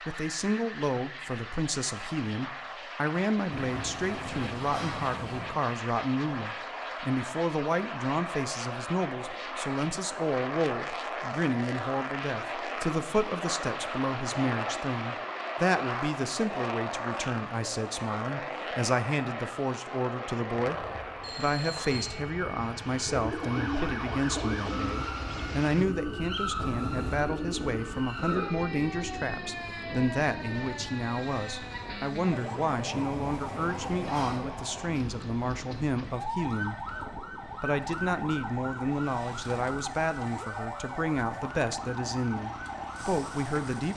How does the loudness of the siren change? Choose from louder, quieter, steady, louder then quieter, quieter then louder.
steady.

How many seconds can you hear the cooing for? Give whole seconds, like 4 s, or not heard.
8 s.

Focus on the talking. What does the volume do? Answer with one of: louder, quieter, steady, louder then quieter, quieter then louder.
steady.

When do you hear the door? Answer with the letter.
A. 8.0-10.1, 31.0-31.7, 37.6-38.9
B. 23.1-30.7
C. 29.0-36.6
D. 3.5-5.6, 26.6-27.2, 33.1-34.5
D.